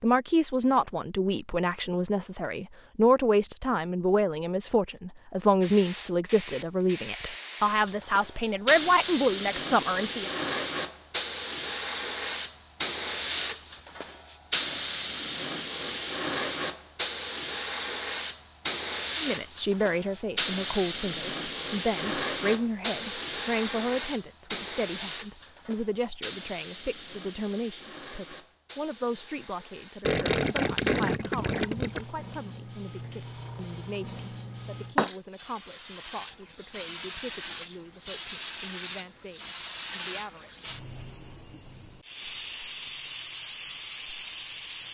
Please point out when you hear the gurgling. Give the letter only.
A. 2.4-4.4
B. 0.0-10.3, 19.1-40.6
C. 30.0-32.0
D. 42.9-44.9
C.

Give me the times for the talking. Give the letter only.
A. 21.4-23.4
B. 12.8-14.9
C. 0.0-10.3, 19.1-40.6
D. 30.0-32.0
C.